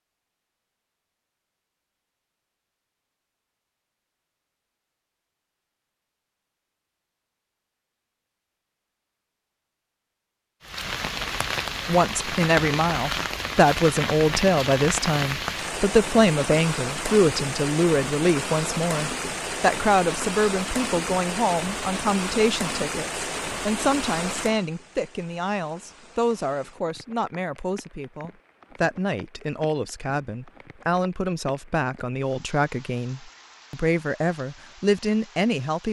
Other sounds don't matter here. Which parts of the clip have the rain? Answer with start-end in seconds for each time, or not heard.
10.6-35.8.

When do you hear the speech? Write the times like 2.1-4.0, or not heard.
11.8-35.8.